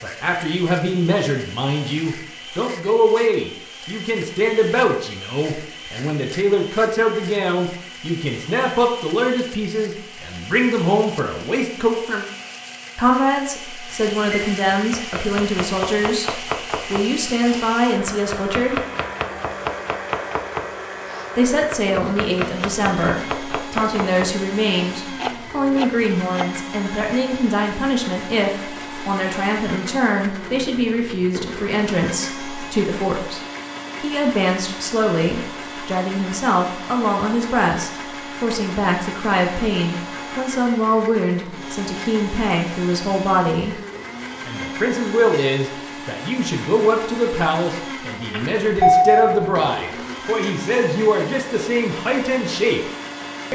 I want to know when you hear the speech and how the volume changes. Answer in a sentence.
The speech can be heard from 0.0 to 12.2 s, at a steady volume; from 12.9 to 18.8 s, at a steady volume; from 21.4 to 33.4 s, at a steady volume; from 34.0 to 43.8 s, at a steady volume; and from 44.5 to 52.8 s, at a steady volume.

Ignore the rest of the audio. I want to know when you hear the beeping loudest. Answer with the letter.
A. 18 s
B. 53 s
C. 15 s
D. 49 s
D.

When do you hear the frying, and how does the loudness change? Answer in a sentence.
The frying can't be heard in this clip.